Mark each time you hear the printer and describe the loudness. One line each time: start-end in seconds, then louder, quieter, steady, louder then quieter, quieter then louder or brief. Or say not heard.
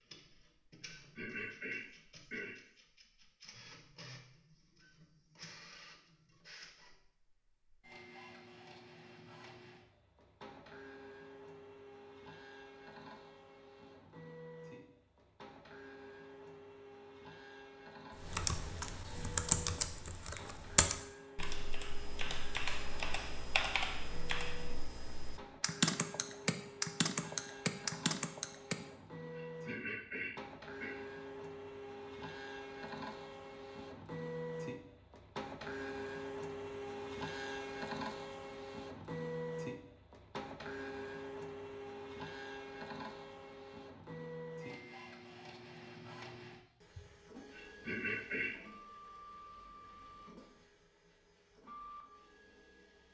0.0-53.0 louder then quieter.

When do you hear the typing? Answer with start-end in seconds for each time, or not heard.
18.2-28.8.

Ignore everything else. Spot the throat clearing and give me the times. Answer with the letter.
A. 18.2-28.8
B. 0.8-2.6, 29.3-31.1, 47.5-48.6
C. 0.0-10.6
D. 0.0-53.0
B.